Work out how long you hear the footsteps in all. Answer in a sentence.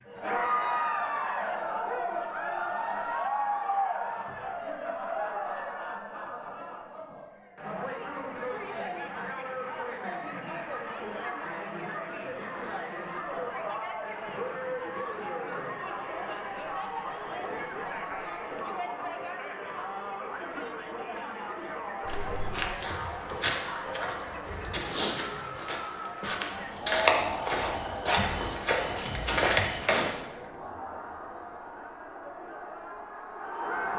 The footsteps can be heard for 8 seconds in total.